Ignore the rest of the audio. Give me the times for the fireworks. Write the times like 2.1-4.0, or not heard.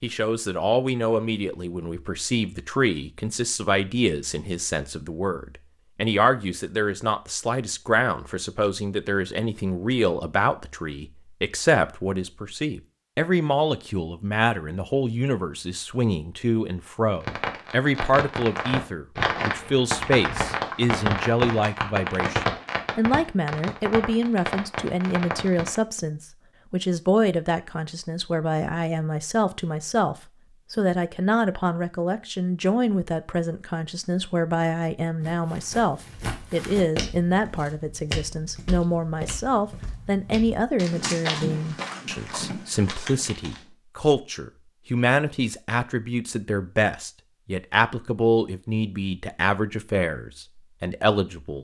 17.2-25.8.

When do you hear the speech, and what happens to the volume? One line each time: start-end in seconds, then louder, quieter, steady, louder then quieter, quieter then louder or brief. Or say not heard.
0.0-51.5 steady.